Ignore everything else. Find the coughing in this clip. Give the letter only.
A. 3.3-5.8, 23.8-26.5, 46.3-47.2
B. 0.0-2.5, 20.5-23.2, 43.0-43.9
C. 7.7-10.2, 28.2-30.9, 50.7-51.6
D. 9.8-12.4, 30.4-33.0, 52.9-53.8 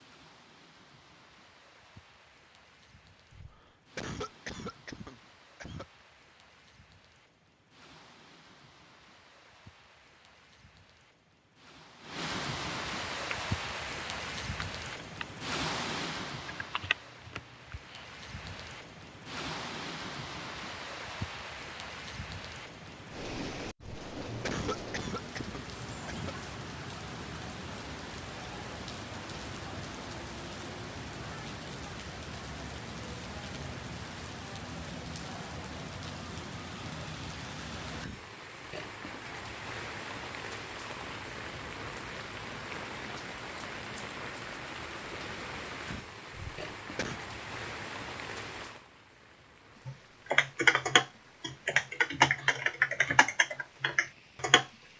A.